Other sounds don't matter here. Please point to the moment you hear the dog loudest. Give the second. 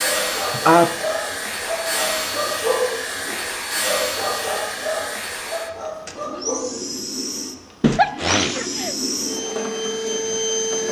3 s.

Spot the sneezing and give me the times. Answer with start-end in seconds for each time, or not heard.
0.3-0.9, 7.8-8.9.